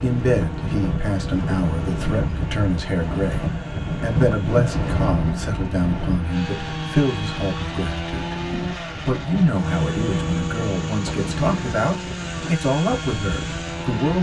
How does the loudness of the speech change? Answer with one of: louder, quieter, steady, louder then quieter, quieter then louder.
steady.